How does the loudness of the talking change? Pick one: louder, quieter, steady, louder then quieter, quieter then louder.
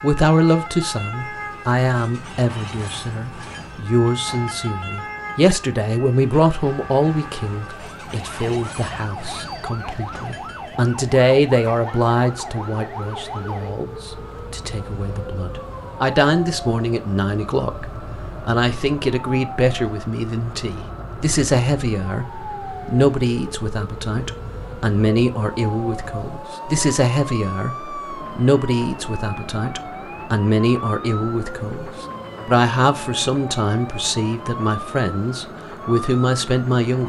steady.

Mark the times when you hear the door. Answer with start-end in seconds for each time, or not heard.
not heard.